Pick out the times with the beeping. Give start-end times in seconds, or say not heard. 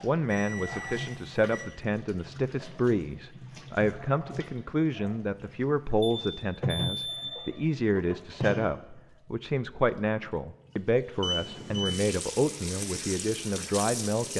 0.3-1.7, 6.0-7.6, 11.2-11.9.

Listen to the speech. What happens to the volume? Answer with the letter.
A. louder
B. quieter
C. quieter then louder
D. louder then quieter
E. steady
E.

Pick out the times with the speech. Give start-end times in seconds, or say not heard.
0.0-14.3.